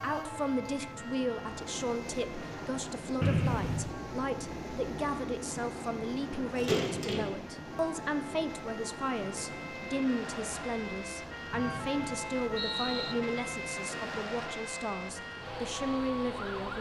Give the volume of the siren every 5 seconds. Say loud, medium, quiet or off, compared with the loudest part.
medium, medium, loud, loud.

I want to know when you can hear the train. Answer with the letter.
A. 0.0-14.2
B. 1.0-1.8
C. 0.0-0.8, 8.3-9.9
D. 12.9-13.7
A.